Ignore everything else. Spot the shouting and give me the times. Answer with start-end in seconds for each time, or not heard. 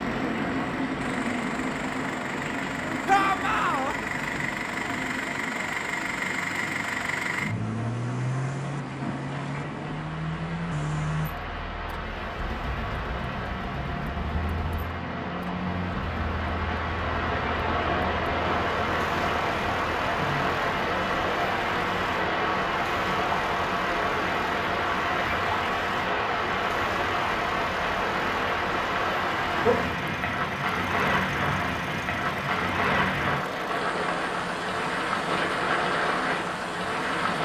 3.0-4.0.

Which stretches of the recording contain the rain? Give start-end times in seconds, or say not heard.
0.0-37.4.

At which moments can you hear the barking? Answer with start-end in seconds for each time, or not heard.
not heard.